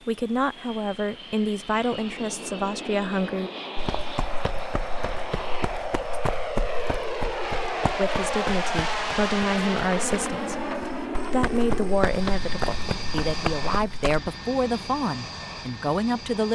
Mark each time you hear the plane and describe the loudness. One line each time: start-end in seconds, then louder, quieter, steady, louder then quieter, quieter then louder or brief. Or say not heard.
0.0-16.4 louder then quieter.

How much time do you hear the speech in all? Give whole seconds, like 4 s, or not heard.
12 s.